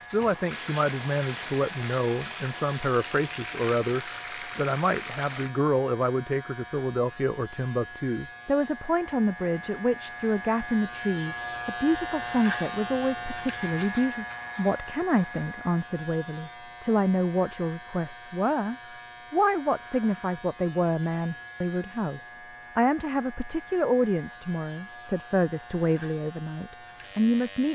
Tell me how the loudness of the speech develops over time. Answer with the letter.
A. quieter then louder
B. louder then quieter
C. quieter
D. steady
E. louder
D.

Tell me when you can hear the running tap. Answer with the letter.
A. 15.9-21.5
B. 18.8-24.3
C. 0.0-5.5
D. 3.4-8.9
C.